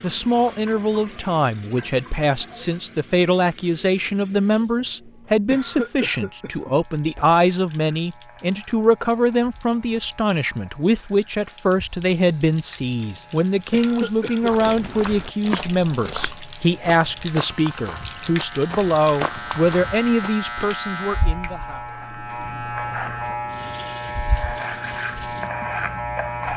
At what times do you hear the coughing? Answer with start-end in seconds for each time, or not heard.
5.5-6.8, 13.7-14.9.